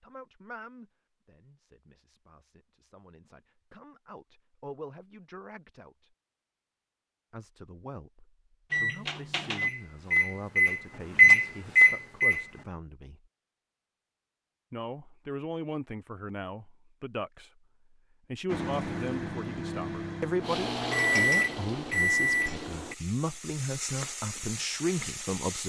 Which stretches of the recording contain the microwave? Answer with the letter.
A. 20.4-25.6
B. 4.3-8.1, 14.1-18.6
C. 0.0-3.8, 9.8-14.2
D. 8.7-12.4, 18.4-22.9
D.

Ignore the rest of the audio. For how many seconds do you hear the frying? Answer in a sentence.
You can hear the frying for 5 seconds altogether.